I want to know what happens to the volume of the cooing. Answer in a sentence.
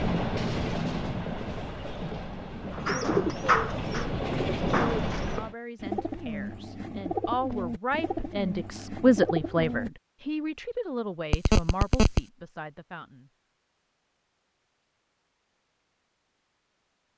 The loudness of the cooing goes down.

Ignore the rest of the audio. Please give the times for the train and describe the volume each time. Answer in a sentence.
The train can be heard from 0.0 to 5.5 s, getting quieter then louder.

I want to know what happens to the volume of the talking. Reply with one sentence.
The volume of the talking goes up, then down.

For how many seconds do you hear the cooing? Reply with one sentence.
The cooing can be heard for 7 seconds in total.